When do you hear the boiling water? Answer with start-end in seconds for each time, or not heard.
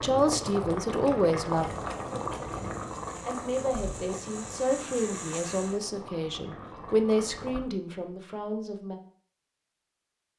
0.0-7.7.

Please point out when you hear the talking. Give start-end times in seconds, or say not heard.
0.0-1.6, 3.2-9.0.